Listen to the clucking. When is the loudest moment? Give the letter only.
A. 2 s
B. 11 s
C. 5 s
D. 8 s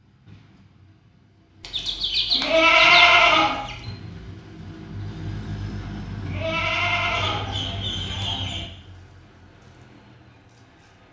A.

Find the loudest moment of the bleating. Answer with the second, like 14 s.
3 s.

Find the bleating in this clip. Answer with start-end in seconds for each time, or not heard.
2.4-3.6, 6.2-7.5.